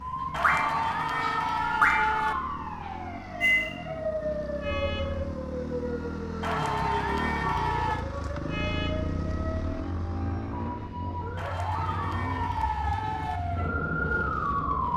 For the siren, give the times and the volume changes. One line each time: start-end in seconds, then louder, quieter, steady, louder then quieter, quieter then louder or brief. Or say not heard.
0.0-14.9 quieter then louder.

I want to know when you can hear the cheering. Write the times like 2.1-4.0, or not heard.
0.3-2.4, 6.4-8.1, 11.3-13.4.